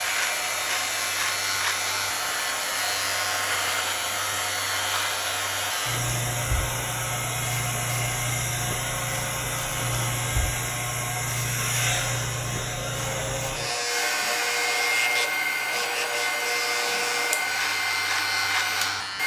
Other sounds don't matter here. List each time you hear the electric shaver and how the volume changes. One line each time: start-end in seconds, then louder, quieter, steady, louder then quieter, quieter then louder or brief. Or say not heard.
0.0-19.2 steady.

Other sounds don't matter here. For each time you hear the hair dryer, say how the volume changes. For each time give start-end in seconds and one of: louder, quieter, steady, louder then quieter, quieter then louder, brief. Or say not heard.
0.0-19.2 steady.